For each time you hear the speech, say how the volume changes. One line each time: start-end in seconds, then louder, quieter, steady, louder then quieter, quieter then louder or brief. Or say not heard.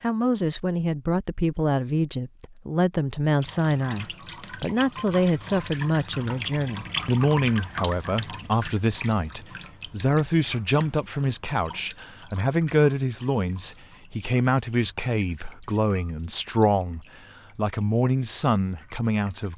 0.0-19.5 steady.